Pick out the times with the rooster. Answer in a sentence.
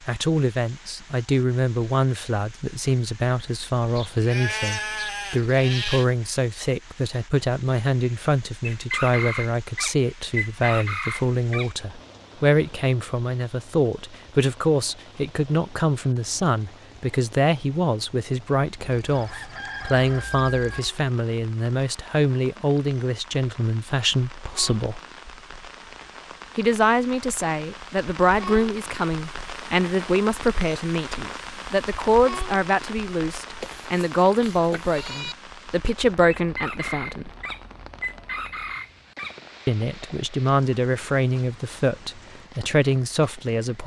The rooster can be heard from 8.6 to 11.7 s, from 18.9 to 20.8 s and from 36.3 to 39.4 s.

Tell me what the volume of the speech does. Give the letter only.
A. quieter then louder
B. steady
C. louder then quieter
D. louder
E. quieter
B.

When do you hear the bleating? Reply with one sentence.
You can hear the bleating from 4.0 to 6.0 s and from 33.6 to 35.4 s.